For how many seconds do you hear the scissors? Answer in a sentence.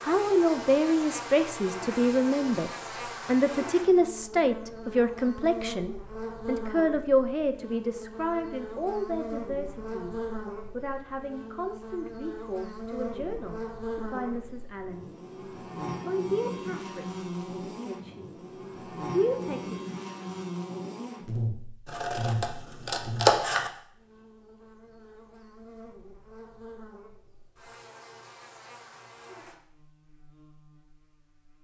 The scissors can be heard for 2 seconds in total.